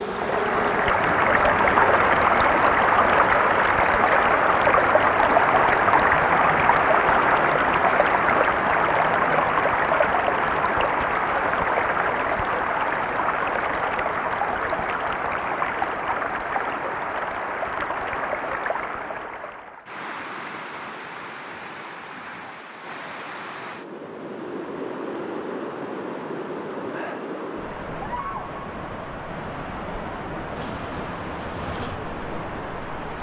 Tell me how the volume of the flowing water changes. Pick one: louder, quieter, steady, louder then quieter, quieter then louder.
quieter.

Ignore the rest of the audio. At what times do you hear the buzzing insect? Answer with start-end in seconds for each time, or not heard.
0.0-2.0, 30.6-33.1.